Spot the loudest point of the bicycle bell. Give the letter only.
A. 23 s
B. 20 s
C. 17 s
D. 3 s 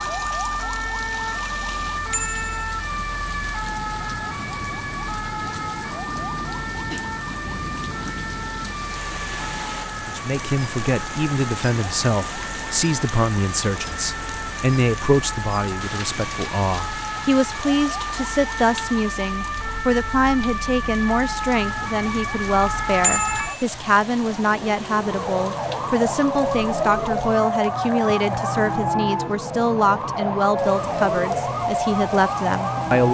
A.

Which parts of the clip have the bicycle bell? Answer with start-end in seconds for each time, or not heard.
2.1-2.7, 23.0-23.6.